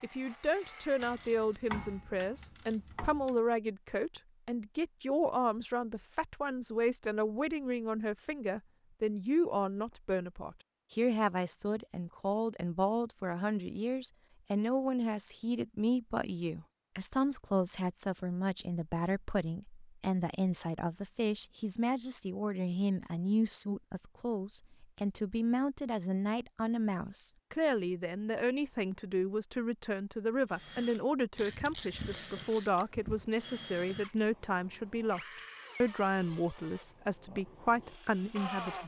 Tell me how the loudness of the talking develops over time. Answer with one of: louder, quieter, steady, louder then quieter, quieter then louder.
steady.